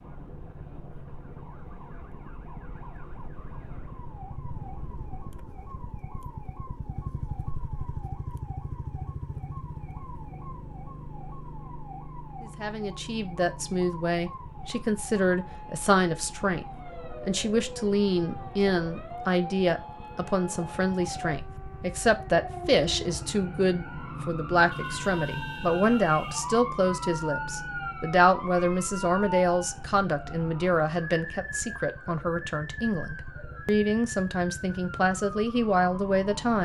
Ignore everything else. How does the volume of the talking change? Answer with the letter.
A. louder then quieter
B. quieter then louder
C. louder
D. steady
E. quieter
D.